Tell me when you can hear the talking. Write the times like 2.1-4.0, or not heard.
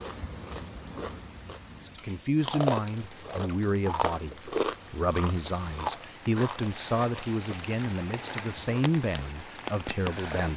1.9-10.5.